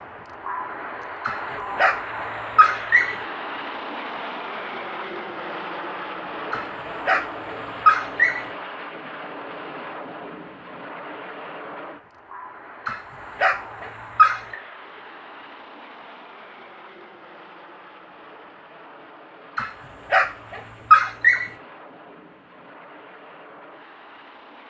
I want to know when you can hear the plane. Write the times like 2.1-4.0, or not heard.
0.0-24.6.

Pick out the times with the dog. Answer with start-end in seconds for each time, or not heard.
1.2-3.1, 6.5-8.4, 12.8-14.6, 19.6-21.4.